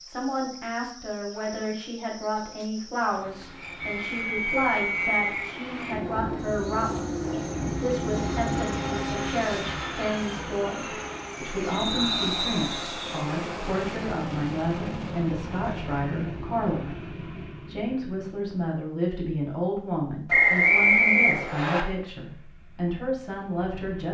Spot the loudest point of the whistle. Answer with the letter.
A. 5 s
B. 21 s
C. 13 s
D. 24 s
B.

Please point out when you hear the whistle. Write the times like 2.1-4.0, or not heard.
3.8-5.5, 11.7-12.9, 20.2-21.9.